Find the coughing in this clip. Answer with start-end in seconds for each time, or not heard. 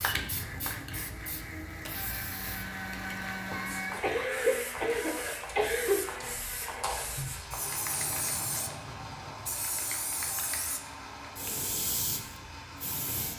4.0-6.0.